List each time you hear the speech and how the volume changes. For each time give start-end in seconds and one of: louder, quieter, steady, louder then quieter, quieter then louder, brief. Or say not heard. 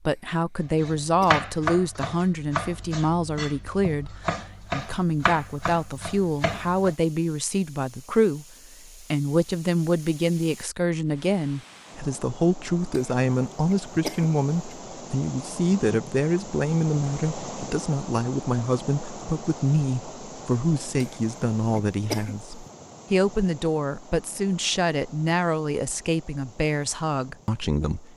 0.1-28.1 steady.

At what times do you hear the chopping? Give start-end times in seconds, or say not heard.
0.8-7.0.